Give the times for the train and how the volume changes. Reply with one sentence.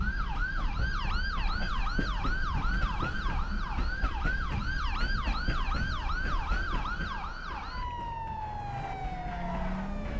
The train can be heard from 0.0 to 10.1 s, getting quieter.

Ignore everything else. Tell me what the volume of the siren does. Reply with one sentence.
The volume of the siren stays about the same.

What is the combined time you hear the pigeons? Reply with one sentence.
The pigeons can't be heard in this clip.